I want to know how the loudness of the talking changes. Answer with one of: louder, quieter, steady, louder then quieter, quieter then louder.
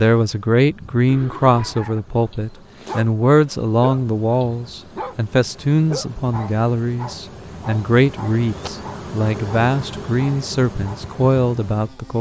steady.